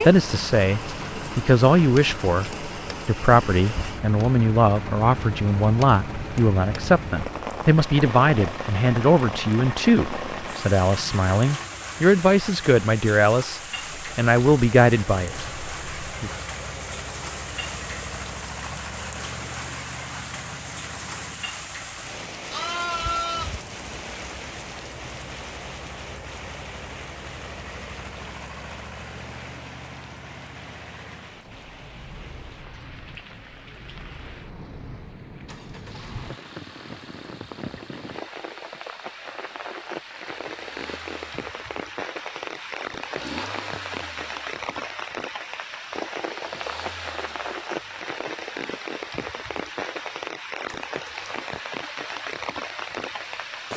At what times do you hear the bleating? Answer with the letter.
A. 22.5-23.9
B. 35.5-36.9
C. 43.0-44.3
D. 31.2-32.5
A.